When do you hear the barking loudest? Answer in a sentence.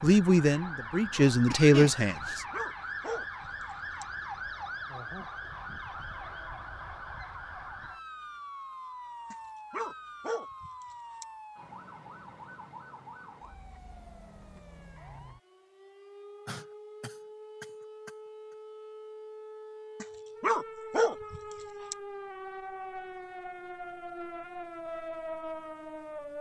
The loudest moment of the barking is at 21 seconds.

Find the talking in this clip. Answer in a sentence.
The talking can be heard from 0.0 to 2.4 s.